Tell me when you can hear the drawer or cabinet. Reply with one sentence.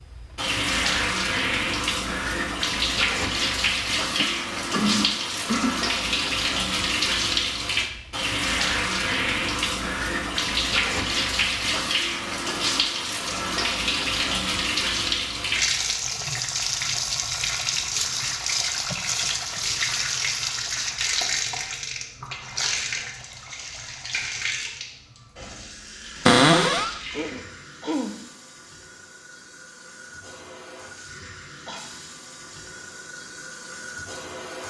You can hear the drawer or cabinet from 26.2 to 26.9 s.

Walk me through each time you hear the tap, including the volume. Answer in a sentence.
You can hear the tap from 0.0 to 34.6 s, getting quieter.